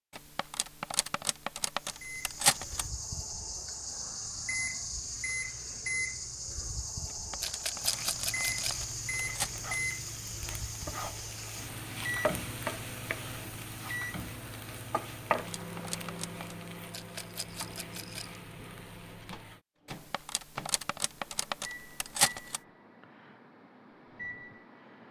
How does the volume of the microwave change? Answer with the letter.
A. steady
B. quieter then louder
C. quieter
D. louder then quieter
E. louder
C.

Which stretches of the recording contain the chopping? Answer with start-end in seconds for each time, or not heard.
not heard.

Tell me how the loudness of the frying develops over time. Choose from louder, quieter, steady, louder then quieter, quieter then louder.
louder then quieter.